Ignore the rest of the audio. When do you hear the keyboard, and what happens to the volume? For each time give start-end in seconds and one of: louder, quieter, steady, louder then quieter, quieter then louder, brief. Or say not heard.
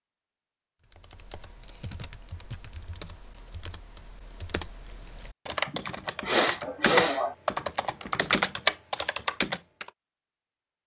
0.9-9.9 louder.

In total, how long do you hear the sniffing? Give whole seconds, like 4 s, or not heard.
2 s.